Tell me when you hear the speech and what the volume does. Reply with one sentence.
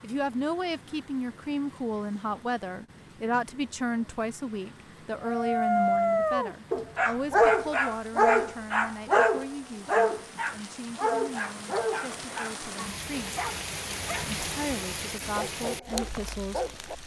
The speech can be heard from 0.0 to 13.4 s, getting quieter; and briefly from 14.3 to 16.8 s.